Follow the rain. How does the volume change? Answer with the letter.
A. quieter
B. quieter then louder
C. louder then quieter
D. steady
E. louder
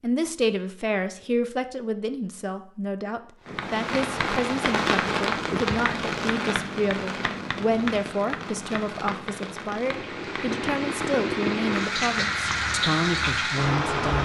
B.